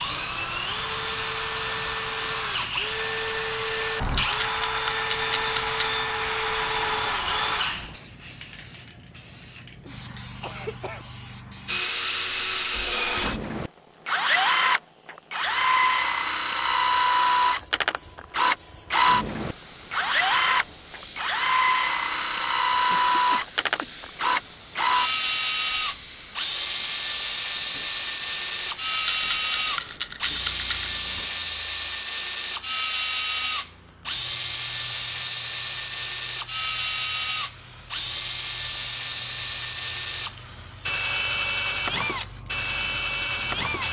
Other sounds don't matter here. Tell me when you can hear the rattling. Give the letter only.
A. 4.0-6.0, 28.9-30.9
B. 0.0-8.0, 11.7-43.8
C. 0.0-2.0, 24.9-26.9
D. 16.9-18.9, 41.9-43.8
A.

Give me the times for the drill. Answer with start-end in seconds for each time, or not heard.
0.0-8.0, 11.7-43.8.